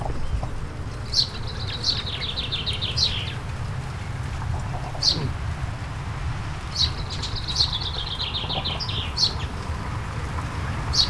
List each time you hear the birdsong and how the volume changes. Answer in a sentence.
The birdsong can be heard from 0.0 to 11.0 s, at a steady volume.